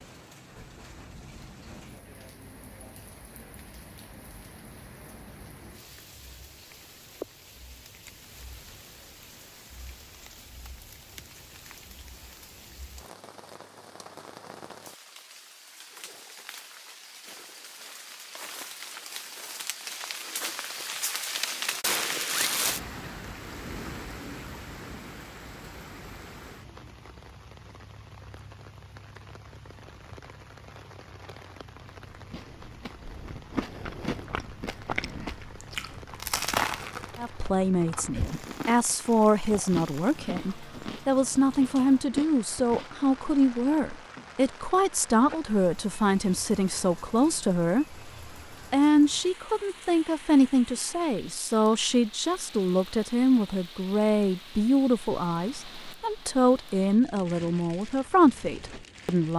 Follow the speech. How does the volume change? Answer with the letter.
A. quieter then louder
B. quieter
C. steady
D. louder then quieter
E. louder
C.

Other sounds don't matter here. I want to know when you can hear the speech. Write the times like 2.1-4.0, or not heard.
37.1-48.0, 48.7-59.3.